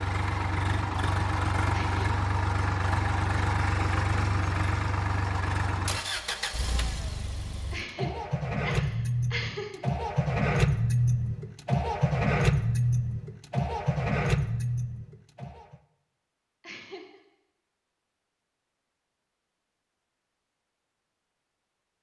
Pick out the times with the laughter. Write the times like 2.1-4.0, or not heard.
1.7-2.2, 7.7-9.8, 16.6-17.2.